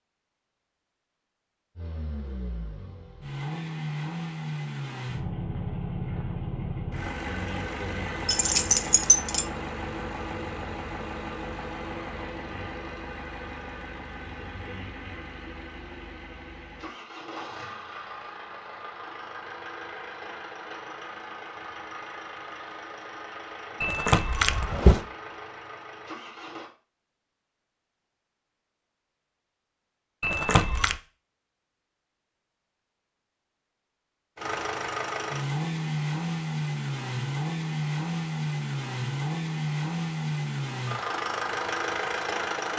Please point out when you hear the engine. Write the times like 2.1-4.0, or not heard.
1.8-26.7, 34.4-42.7.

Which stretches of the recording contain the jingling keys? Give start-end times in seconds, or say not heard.
8.2-9.4, 23.8-25.1, 30.2-30.9.